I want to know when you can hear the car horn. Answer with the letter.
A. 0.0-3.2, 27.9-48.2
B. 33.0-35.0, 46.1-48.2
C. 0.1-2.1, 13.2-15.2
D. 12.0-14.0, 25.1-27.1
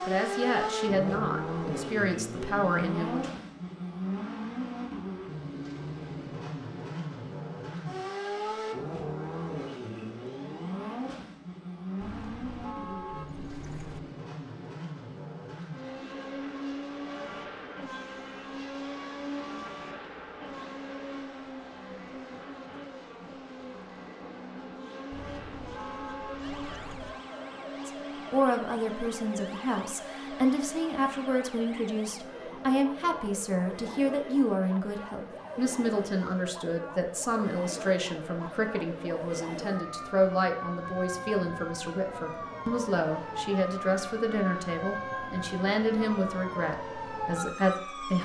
D.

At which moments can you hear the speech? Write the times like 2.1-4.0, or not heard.
0.0-3.2, 27.9-48.2.